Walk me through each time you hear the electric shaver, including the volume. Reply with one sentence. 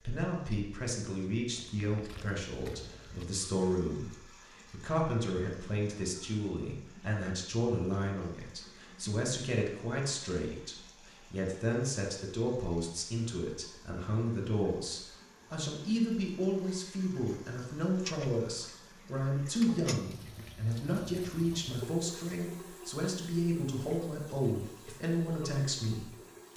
You can't hear the electric shaver here.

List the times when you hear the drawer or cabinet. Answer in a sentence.
The drawer or cabinet can't be heard in this clip.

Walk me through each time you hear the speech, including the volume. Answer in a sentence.
You can hear the speech from 0.0 to 26.5 s, at a steady volume.